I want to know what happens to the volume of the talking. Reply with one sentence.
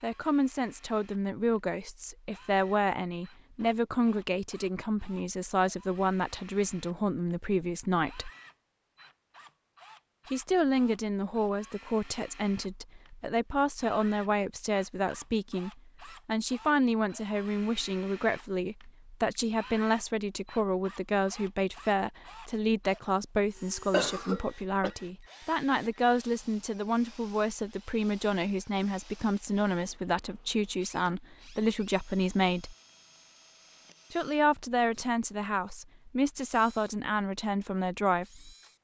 The volume of the talking stays about the same.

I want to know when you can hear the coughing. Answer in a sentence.
The coughing can be heard from 23.9 to 24.9 s.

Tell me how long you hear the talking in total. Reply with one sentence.
You can hear the talking for 35 seconds altogether.